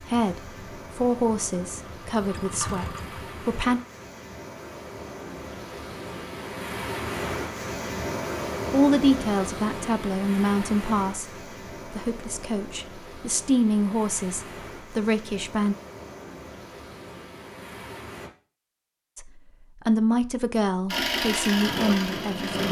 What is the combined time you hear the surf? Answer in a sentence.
The surf can be heard for 18 seconds in total.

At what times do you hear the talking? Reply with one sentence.
The talking can be heard from 0.0 to 3.8 s, from 8.7 to 15.8 s and from 19.1 to 22.6 s.